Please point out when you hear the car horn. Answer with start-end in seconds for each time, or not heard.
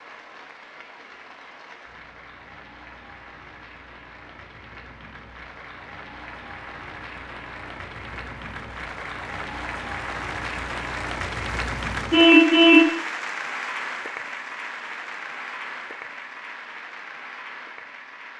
12.1-12.9.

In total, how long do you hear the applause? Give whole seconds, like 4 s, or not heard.
18 s.